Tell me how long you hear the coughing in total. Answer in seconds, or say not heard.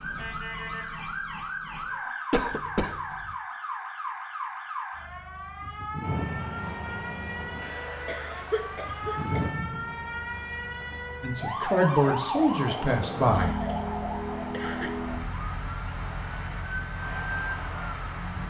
4 s.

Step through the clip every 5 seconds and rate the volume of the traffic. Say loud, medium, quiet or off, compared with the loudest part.
off, loud, medium, loud.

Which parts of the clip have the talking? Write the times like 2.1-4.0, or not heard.
11.2-13.6.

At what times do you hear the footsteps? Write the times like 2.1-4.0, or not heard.
not heard.